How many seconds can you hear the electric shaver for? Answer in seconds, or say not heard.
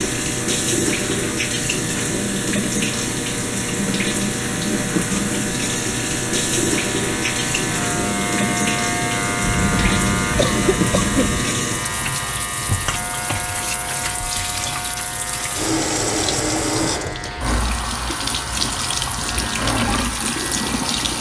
21 s.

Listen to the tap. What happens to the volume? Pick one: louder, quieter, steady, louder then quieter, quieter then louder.
steady.